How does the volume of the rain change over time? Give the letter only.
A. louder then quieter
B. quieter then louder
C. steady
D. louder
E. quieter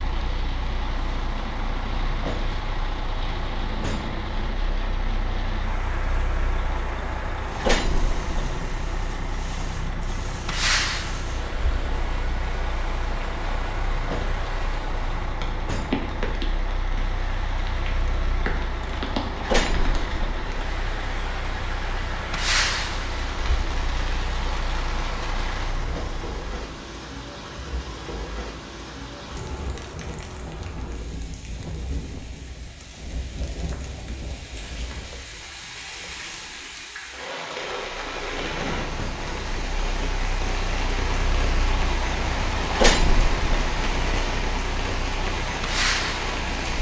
D.